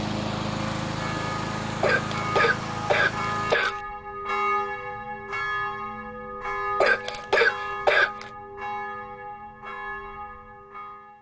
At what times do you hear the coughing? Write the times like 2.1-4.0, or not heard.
1.8-3.8, 6.8-8.2.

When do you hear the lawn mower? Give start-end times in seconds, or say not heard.
0.0-3.5.